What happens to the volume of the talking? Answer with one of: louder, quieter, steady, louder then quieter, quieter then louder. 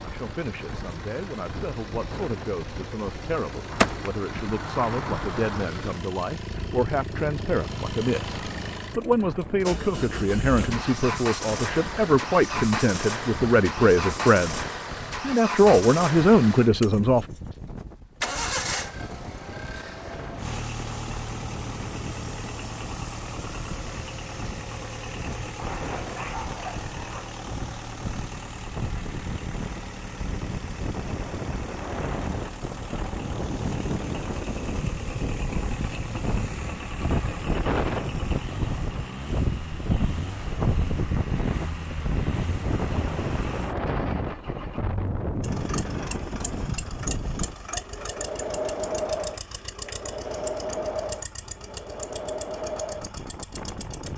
louder.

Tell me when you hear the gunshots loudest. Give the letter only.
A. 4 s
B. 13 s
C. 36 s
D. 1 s
A.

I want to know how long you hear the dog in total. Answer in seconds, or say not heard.
2 s.